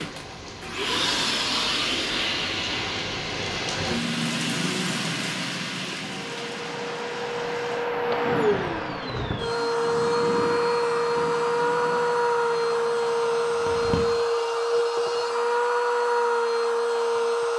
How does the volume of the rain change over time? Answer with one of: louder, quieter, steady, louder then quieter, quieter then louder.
louder then quieter.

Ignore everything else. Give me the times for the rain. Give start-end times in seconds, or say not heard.
0.0-14.2.